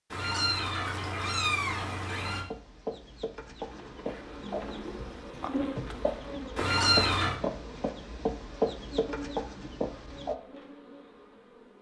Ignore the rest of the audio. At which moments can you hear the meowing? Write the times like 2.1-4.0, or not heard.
0.1-2.5, 6.5-7.3.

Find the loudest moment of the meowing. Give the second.
7 s.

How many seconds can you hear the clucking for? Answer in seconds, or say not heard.
8 s.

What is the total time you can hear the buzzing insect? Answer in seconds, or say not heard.
8 s.